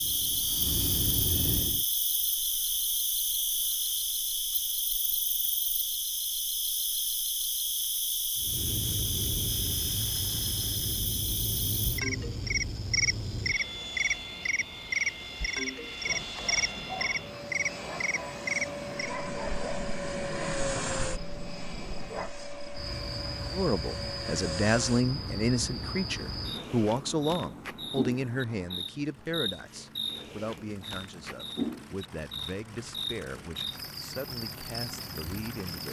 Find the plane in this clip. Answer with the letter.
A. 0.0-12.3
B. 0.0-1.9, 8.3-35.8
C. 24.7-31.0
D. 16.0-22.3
B.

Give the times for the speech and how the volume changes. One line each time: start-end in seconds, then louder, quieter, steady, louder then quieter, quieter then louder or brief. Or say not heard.
23.5-35.8 quieter.